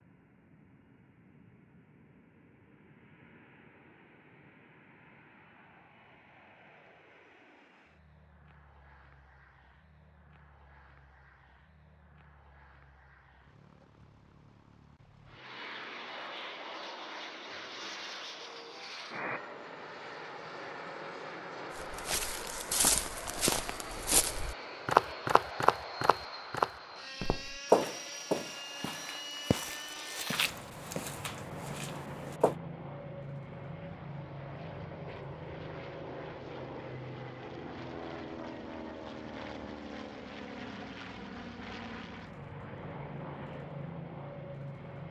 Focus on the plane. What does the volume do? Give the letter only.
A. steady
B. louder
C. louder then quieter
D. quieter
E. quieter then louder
B.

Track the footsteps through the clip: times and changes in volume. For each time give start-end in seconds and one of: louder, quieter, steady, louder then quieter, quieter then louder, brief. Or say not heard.
21.8-32.5 louder then quieter.